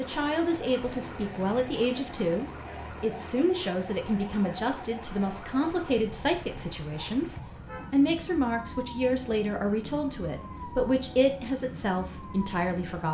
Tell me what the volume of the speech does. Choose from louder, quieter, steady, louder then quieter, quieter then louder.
steady.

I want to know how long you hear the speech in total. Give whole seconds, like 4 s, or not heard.
13 s.